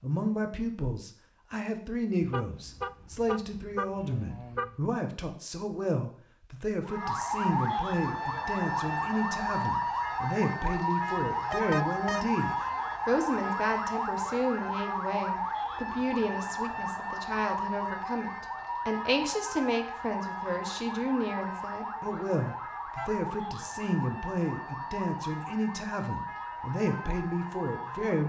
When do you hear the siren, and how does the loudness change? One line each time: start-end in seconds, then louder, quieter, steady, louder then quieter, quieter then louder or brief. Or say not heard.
6.8-28.2 quieter.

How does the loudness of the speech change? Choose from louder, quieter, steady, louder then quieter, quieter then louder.
steady.